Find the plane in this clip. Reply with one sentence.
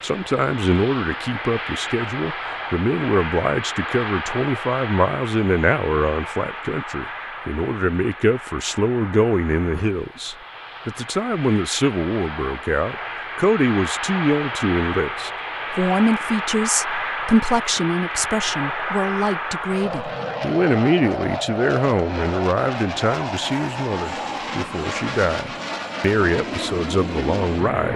You can hear the plane from 0.0 to 27.9 s.